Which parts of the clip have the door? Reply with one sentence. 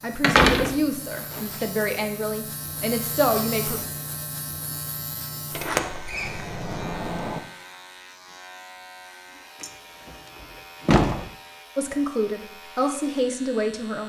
You can hear the door from 0.2 to 1.6 s, from 5.5 to 7.4 s and from 9.6 to 11.2 s.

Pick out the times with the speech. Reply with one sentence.
The speech can be heard from 0.0 to 3.8 s and from 11.8 to 14.0 s.